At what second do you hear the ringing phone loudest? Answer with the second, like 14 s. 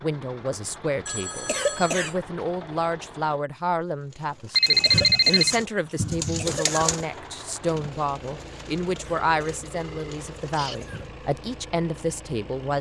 5 s.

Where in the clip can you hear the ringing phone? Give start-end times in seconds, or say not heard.
1.1-2.1, 4.5-5.5, 9.1-10.8.